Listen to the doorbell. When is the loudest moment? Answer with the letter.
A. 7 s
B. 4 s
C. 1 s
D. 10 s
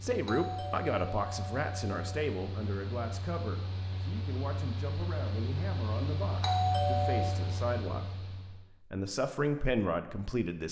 A.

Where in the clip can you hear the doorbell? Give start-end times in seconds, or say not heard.
0.2-2.0, 6.4-7.4.